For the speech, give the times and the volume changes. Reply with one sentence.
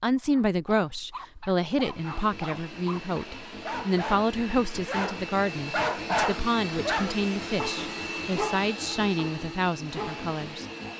You can hear the speech from 0.0 to 10.7 s, at a steady volume.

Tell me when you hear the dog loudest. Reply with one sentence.
The volume of the dog peaks at 6 seconds.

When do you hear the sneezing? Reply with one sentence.
You can't hear the sneezing here.